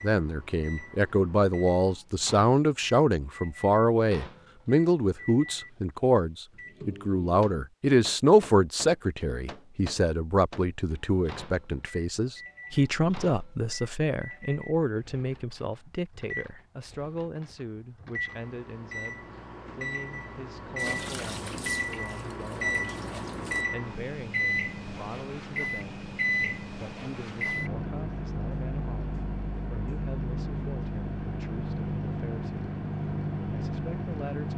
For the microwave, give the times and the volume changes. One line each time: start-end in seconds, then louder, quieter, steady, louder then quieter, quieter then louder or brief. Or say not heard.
0.0-34.5 louder.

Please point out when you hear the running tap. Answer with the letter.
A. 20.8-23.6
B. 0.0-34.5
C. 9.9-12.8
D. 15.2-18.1
A.